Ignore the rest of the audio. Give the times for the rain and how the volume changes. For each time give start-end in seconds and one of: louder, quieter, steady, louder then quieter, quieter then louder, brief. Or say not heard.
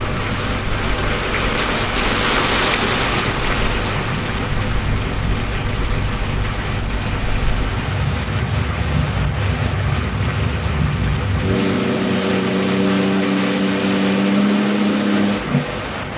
0.0-16.1 quieter.